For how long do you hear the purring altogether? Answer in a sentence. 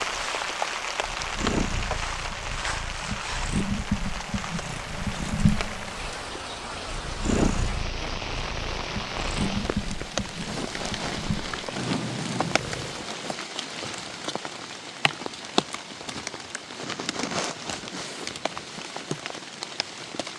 You can hear the purring for 13 seconds altogether.